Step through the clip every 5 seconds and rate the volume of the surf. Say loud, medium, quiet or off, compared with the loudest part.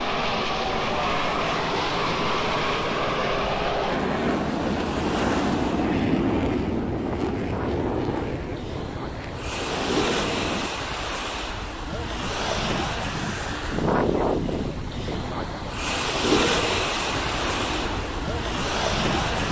medium, medium, loud, loud.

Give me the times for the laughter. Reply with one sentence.
You can't hear the laughter here.